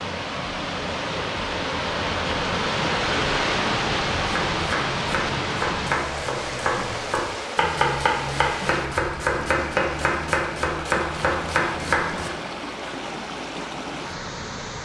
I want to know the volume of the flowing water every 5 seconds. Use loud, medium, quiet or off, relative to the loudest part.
loud, medium, medium.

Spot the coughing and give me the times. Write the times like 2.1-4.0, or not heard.
not heard.